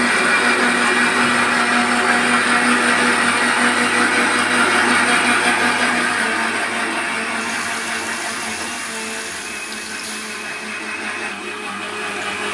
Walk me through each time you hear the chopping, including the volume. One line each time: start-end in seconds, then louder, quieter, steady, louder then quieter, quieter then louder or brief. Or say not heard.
not heard.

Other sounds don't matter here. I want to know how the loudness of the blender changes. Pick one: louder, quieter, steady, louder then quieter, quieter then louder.
quieter.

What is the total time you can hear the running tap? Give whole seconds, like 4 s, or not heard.
5 s.